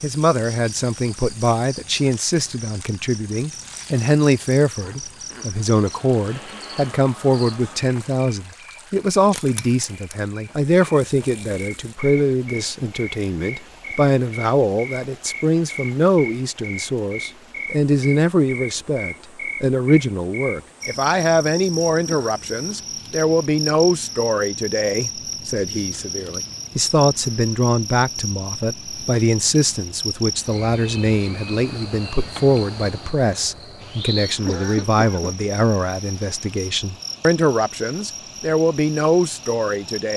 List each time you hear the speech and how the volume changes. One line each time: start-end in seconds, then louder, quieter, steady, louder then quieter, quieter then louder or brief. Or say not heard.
0.0-40.1 steady.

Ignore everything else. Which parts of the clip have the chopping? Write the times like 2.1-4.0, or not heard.
not heard.